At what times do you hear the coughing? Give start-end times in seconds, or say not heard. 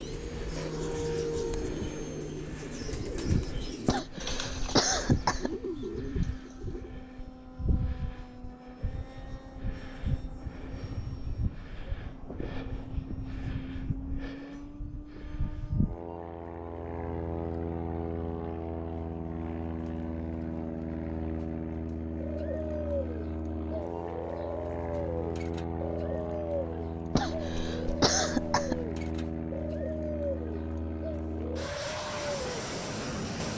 3.9-5.6, 27.1-28.9.